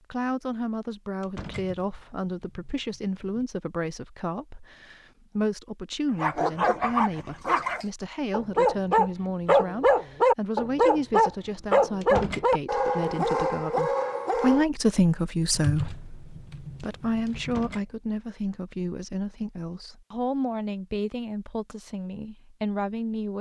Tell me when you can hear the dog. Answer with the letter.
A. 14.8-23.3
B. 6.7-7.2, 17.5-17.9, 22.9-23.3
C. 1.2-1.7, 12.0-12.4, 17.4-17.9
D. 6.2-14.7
D.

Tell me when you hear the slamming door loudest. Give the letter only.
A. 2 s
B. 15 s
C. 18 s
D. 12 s
D.